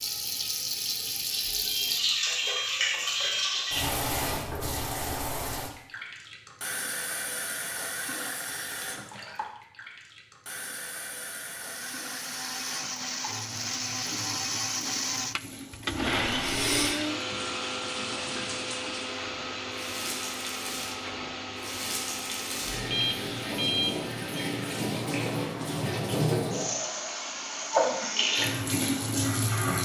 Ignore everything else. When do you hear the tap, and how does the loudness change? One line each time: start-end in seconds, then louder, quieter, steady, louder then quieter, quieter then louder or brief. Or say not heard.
0.0-29.8 quieter then louder.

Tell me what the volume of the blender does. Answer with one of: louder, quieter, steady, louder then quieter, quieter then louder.
quieter.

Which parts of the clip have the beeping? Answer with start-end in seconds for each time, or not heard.
1.6-3.5, 16.1-17.0, 22.9-24.4.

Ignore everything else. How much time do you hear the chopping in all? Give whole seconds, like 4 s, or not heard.
not heard.